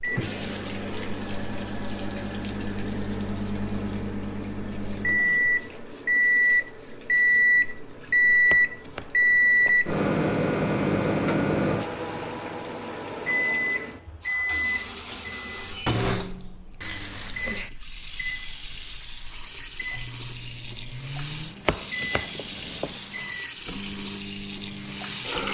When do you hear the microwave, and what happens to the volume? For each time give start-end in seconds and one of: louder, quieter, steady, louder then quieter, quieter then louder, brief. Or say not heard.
0.0-25.4 louder then quieter.